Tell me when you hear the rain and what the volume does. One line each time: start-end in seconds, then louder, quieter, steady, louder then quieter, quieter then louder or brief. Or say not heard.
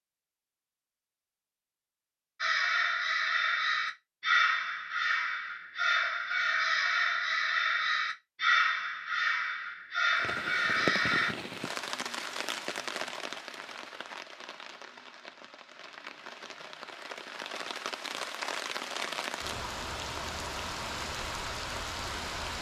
10.1-22.5 quieter then louder.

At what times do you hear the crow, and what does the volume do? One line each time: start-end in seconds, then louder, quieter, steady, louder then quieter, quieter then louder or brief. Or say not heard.
2.4-11.3 steady.